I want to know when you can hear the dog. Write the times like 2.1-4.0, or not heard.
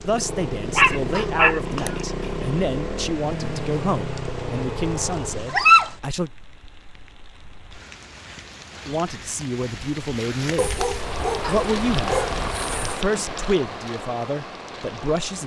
0.8-1.9, 5.5-5.9, 10.6-12.9.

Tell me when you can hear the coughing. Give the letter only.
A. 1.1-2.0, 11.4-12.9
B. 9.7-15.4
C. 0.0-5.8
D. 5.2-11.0
A.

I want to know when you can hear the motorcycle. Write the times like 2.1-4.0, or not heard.
0.0-5.8.